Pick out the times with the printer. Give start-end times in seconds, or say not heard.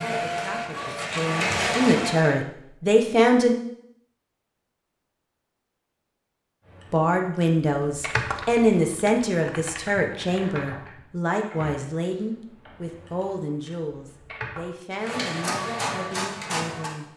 0.0-2.4, 14.9-17.1.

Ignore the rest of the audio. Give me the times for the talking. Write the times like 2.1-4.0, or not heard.
0.0-3.5, 6.9-17.1.